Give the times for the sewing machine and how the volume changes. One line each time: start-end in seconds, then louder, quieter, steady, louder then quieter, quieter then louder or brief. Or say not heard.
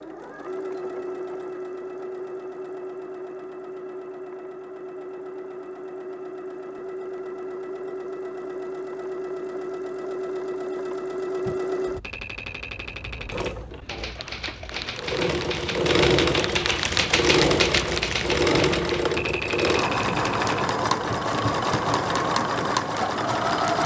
0.0-23.8 louder.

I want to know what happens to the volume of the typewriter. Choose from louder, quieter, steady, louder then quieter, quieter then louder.
louder then quieter.